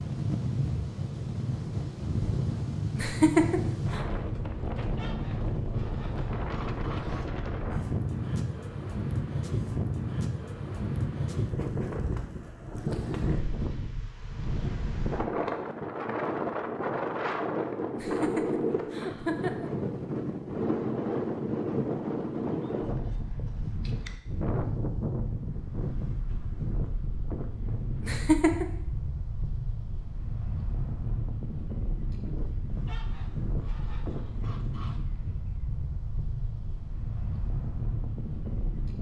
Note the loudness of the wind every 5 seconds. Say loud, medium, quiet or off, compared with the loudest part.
loud, loud, loud, loud, loud, medium, medium, medium.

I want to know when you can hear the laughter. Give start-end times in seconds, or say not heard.
3.0-4.0, 17.9-19.7, 28.0-28.6.